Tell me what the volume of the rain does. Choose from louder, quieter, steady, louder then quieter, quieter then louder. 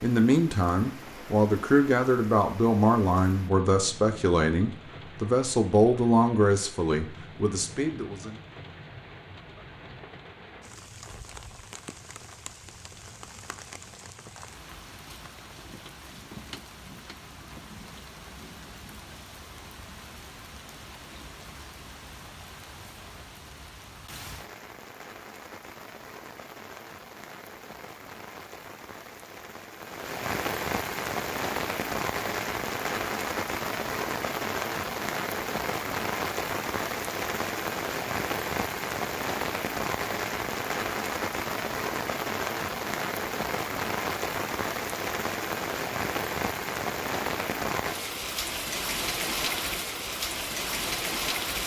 louder.